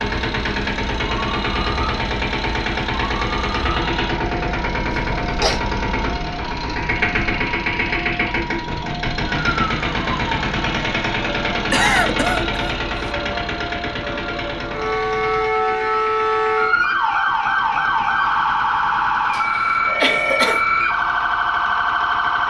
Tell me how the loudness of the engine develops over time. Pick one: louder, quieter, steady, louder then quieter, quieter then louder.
quieter.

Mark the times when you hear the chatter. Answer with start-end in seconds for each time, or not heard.
not heard.